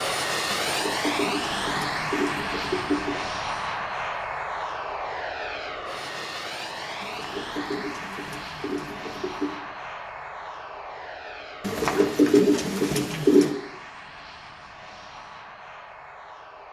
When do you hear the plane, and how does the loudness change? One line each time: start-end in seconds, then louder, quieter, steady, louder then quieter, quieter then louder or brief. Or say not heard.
0.0-16.6 quieter.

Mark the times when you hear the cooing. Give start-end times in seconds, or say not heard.
0.5-3.2, 7.0-9.6, 11.6-13.5.